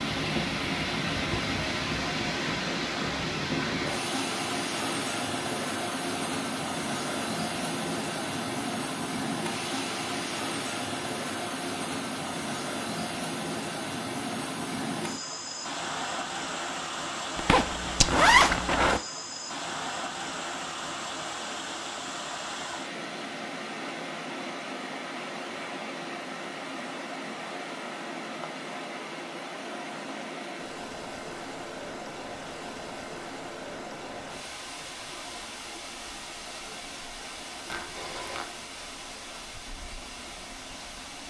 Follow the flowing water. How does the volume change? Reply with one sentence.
The loudness of the flowing water goes down.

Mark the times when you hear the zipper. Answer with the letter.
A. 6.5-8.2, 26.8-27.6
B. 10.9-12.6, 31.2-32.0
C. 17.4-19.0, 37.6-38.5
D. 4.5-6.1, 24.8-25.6
C.